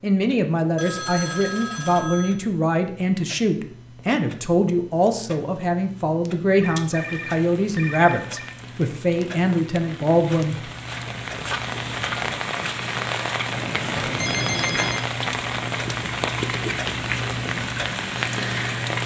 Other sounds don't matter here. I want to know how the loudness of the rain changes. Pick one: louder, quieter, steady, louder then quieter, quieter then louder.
louder.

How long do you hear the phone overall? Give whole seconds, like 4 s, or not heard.
5 s.